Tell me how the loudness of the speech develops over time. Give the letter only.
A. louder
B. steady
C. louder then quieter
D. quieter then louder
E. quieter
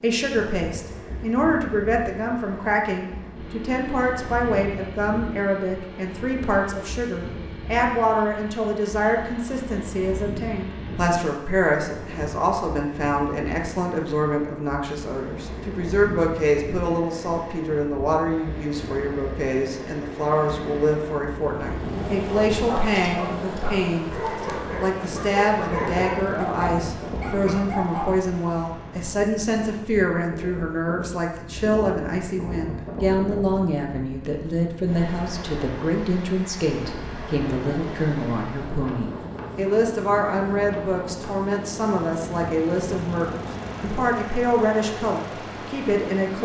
B.